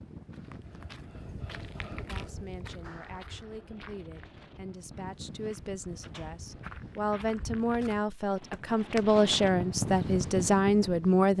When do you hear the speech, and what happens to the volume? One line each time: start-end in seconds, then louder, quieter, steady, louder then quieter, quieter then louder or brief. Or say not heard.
1.8-11.3 louder.